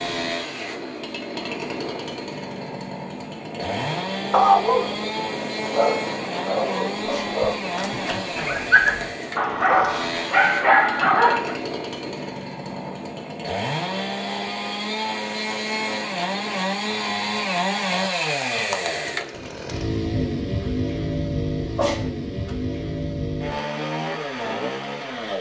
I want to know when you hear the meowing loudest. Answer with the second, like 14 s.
22 s.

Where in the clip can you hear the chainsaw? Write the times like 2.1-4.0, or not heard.
0.0-25.3.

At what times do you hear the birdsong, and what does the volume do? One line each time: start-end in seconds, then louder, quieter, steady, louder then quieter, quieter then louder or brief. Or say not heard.
not heard.